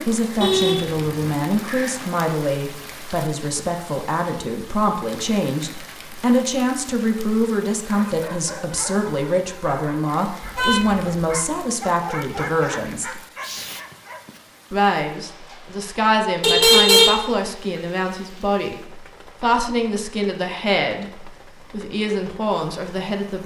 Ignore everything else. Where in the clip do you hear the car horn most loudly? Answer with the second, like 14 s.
17 s.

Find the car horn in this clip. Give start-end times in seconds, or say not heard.
0.4-2.0, 10.4-11.1, 16.4-17.1.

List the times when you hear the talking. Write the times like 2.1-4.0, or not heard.
0.1-13.2, 14.7-23.4.